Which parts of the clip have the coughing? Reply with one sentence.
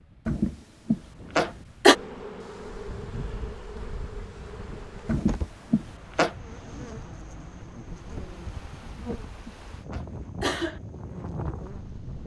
You can hear the coughing from 0.2 to 1.9 s, from 5.0 to 6.3 s and from 8.8 to 10.8 s.